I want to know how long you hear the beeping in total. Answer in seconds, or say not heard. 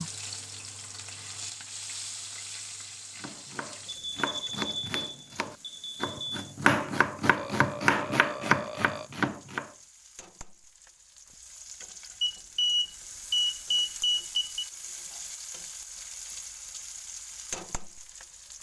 5 s.